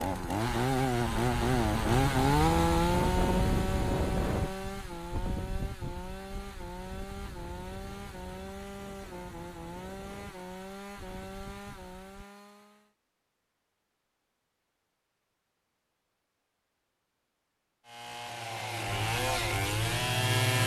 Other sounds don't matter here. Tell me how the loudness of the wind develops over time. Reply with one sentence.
The loudness of the wind goes down.